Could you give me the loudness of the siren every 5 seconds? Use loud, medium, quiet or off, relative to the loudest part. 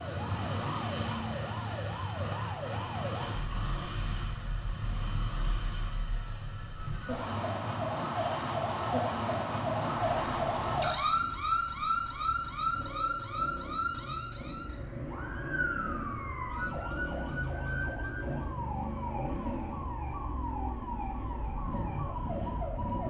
medium, loud, loud, medium, medium.